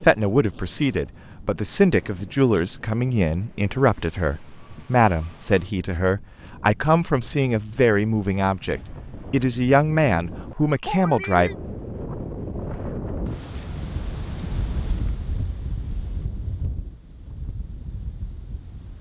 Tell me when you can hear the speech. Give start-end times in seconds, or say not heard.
0.0-11.5.